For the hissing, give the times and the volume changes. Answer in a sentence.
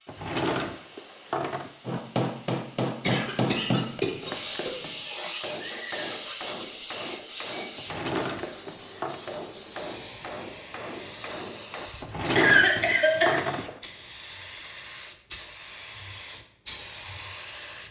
You can hear the hissing from 0.0 to 17.8 s, getting louder.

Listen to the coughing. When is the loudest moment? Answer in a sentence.
The volume of the coughing peaks at 13 seconds.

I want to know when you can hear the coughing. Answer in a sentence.
You can hear the coughing from 3.0 to 4.7 s and from 12.3 to 13.4 s.